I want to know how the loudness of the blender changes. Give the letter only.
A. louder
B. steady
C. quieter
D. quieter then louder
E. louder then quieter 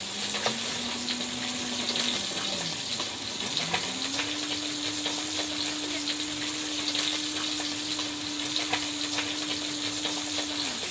B.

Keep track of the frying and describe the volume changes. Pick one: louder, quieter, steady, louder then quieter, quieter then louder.
steady.